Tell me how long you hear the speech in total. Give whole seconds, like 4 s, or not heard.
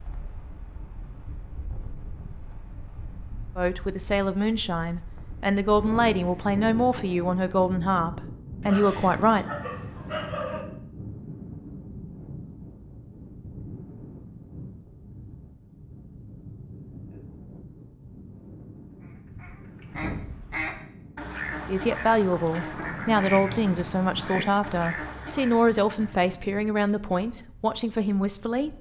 13 s.